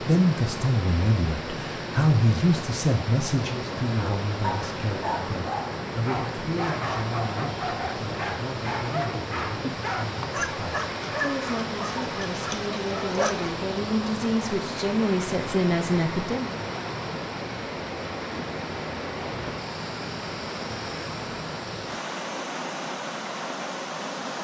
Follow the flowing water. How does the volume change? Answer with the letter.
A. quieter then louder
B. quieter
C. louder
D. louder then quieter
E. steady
E.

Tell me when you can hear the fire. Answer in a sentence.
You can't hear the fire here.